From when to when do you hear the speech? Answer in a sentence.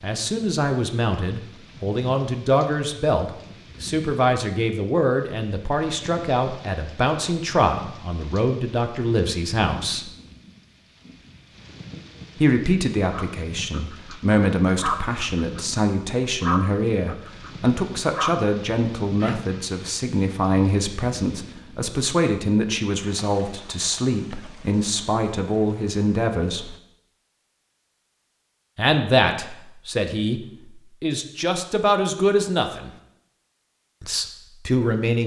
The speech can be heard from 0.0 to 10.1 s, from 12.3 to 26.8 s, from 28.8 to 32.9 s and from 34.0 to 35.2 s.